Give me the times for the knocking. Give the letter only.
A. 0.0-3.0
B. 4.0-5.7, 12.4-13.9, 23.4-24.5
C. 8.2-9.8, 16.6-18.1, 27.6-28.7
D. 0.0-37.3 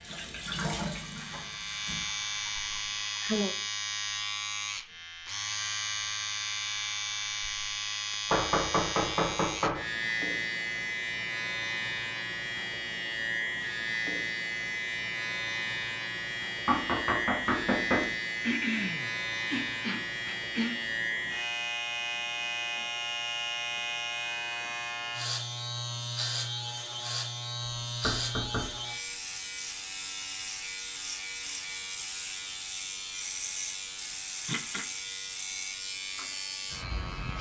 C.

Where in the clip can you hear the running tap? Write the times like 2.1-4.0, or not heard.
0.0-3.0.